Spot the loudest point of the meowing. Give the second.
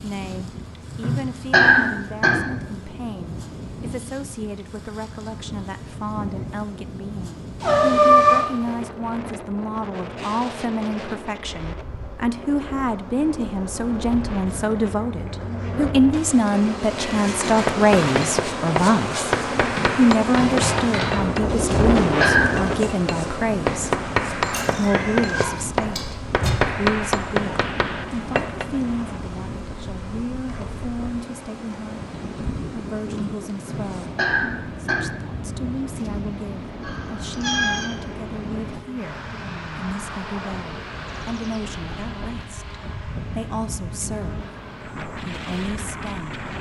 8 s.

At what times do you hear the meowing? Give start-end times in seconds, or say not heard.
7.6-8.8, 24.5-26.5, 36.8-37.9.